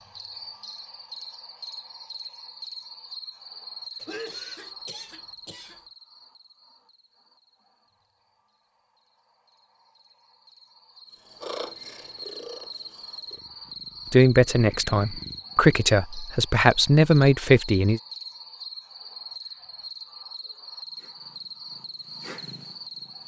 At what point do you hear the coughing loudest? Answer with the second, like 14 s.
4 s.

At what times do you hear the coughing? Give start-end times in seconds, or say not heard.
4.0-5.8.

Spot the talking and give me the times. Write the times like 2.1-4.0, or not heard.
14.1-18.0.